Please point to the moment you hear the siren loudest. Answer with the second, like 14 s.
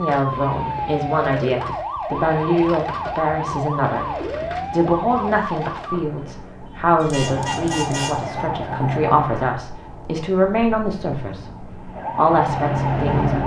13 s.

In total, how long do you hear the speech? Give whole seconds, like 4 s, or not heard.
12 s.